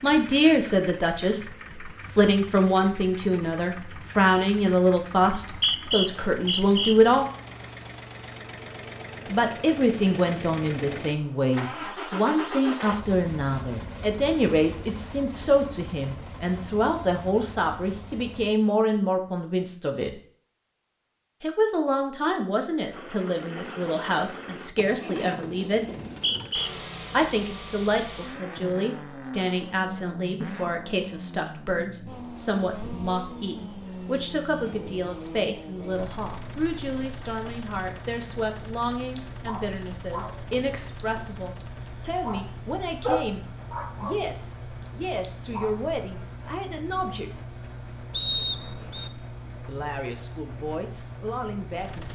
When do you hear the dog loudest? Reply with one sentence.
The loudest moment of the dog is at 43 seconds.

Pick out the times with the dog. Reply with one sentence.
The dog can be heard from 39.1 to 45.8 s.